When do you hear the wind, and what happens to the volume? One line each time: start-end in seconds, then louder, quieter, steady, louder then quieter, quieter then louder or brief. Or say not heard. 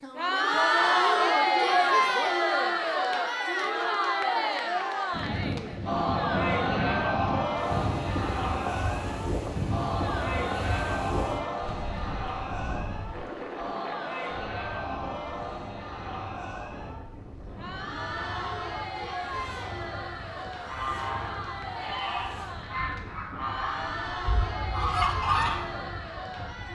5.1-26.7 quieter.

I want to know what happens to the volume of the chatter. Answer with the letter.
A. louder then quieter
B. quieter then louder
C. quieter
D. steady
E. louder
C.